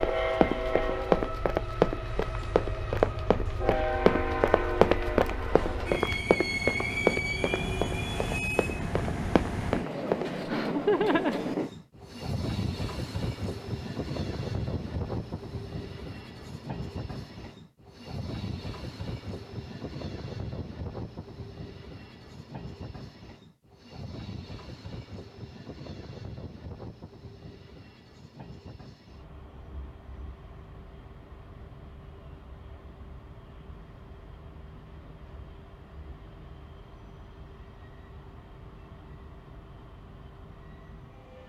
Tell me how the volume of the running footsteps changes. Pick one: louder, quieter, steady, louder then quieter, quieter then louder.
quieter.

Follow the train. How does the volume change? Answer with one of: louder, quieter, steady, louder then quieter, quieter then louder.
quieter.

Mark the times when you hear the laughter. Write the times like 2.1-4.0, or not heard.
10.2-11.5.